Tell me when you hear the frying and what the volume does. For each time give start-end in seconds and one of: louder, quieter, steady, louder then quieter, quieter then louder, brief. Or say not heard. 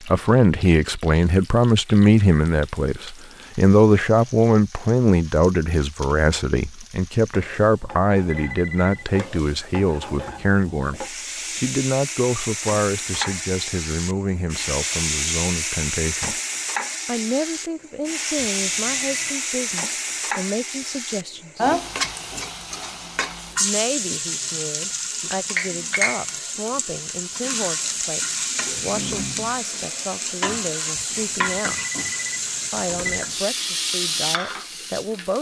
0.0-35.3 louder.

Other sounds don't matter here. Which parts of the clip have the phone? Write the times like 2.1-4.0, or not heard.
7.8-9.1, 18.4-19.4, 30.9-33.2.